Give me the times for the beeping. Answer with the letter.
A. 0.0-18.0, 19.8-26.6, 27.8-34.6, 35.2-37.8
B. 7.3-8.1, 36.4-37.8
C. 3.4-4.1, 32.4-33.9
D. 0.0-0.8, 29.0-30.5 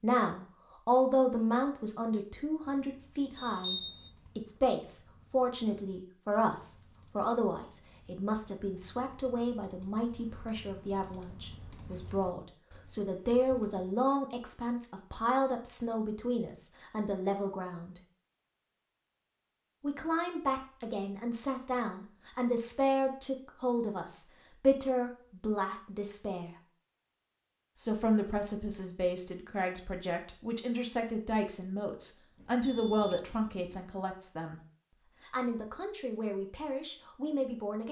C.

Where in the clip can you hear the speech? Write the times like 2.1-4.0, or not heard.
0.0-18.0, 19.8-26.6, 27.8-34.6, 35.2-37.8.